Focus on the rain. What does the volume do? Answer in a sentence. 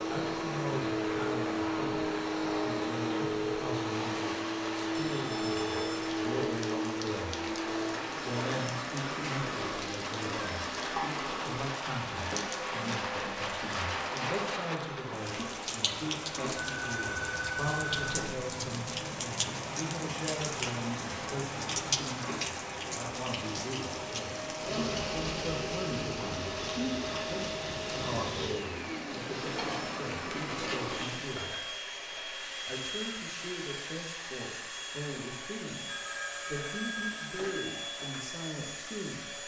The volume of the rain stays about the same.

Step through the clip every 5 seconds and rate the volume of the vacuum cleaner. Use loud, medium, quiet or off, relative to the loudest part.
loud, loud, medium, medium, medium, medium, medium, medium.